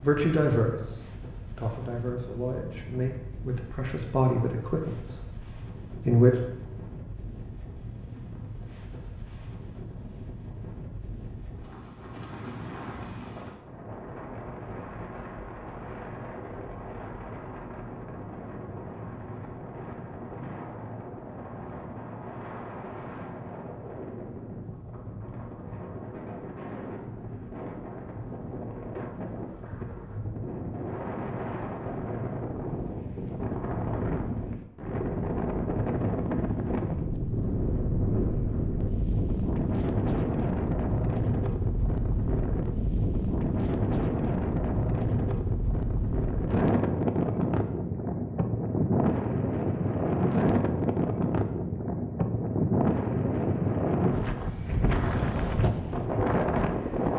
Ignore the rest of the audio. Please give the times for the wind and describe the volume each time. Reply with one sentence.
The wind can be heard from 0.0 to 57.1 s, getting louder.